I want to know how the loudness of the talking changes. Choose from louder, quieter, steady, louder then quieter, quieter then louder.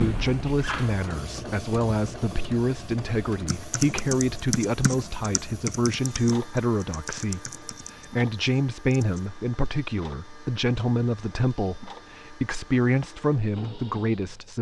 steady.